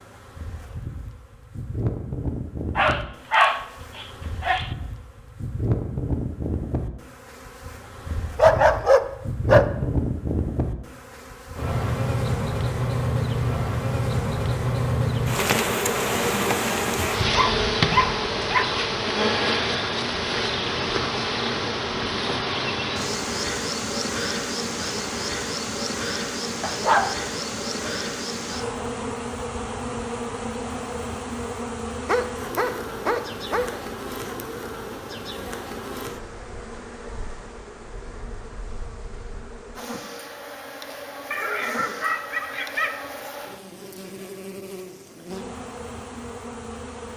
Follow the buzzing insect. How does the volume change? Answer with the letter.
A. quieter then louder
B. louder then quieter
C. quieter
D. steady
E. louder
B.